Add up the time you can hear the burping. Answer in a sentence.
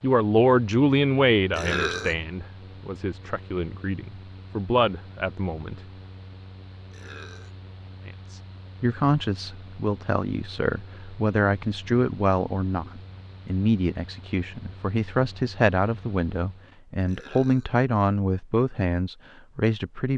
You can hear the burping for 2 seconds altogether.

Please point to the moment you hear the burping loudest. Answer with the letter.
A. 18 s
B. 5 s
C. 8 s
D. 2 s
D.